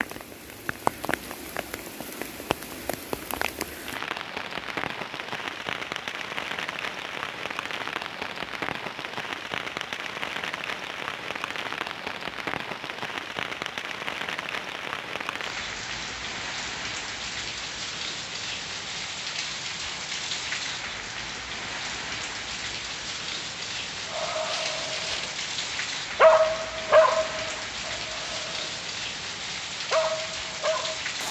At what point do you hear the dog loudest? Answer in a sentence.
The volume of the dog peaks at 26 seconds.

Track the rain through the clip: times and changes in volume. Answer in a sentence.
The rain can be heard from 0.0 to 31.2 s, at a steady volume.